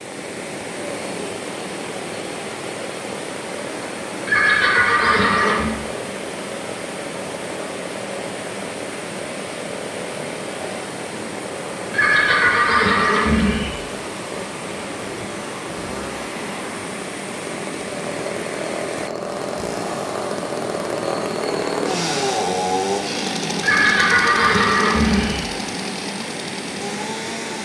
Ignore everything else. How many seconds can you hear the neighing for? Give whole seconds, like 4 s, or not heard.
5 s.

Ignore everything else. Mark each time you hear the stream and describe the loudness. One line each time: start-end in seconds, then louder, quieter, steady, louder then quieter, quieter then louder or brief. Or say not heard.
0.0-27.6 steady.